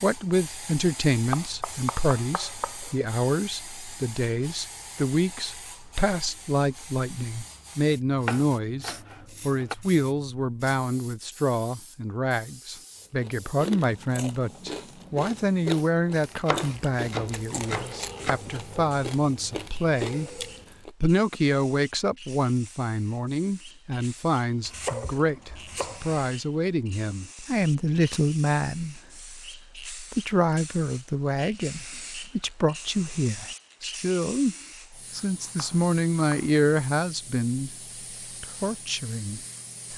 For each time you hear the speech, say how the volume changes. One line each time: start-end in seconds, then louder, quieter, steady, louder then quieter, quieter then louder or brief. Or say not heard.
0.0-37.8 steady
38.4-39.9 brief.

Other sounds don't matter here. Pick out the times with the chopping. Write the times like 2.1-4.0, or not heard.
1.3-2.9, 8.2-9.8, 16.4-18.4, 24.6-26.3, 35.1-36.6.